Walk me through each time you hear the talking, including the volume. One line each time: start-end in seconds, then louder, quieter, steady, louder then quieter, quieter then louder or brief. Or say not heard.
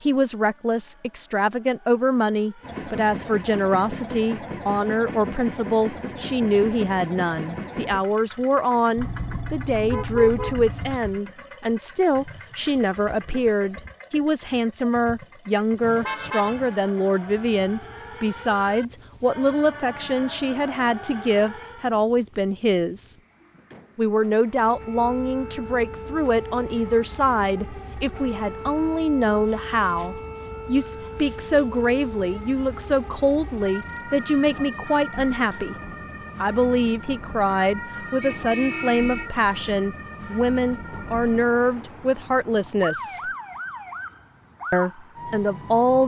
0.0-23.1 steady
23.9-35.8 steady
36.4-43.3 steady
44.7-46.0 brief.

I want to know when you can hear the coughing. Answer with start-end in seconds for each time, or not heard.
not heard.